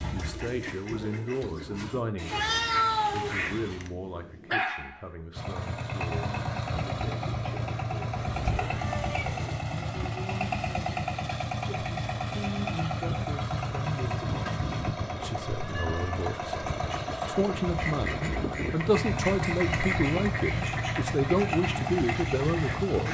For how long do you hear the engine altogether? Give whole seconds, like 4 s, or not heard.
18 s.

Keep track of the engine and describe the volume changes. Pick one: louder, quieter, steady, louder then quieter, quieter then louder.
steady.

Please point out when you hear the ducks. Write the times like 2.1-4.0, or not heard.
0.0-3.6, 17.6-23.0.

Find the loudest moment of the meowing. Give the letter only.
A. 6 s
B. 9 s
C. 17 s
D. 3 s
D.